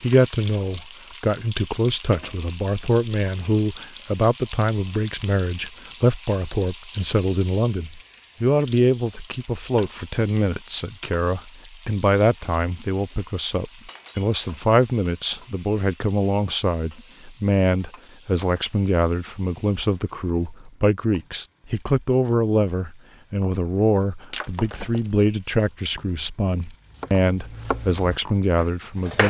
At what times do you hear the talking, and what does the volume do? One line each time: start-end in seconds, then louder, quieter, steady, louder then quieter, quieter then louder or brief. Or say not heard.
0.0-29.2 steady.